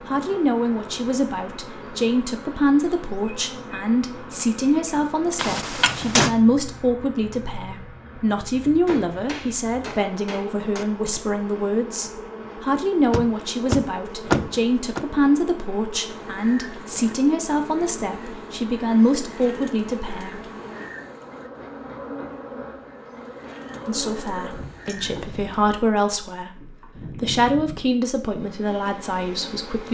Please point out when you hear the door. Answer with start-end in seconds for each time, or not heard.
5.3-6.3, 13.1-15.1, 24.9-25.9.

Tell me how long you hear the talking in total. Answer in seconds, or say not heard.
26 s.